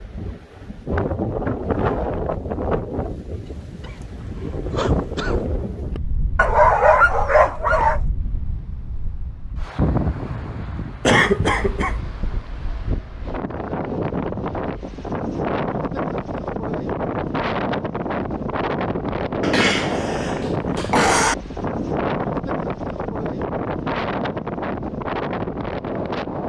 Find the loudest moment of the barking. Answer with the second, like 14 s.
7 s.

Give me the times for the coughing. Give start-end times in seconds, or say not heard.
3.5-5.4, 11.1-11.9, 19.4-21.4.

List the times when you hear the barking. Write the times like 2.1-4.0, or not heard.
6.3-8.0.